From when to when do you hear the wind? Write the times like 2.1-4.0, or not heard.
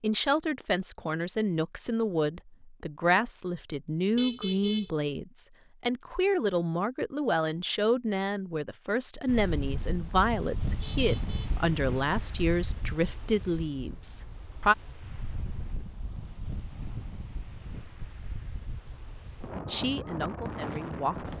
9.2-21.3.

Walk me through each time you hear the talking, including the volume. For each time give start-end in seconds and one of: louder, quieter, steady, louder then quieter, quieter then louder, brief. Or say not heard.
0.0-14.8 steady
19.6-21.3 brief.